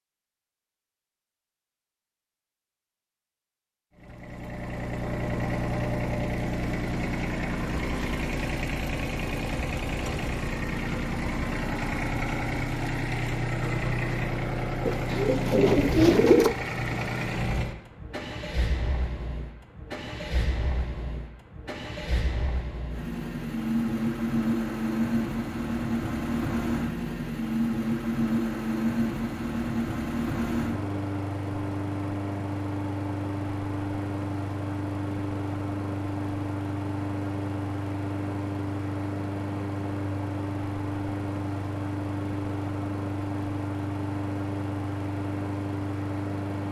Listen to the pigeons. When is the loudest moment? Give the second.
16 s.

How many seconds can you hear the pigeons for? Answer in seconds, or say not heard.
2 s.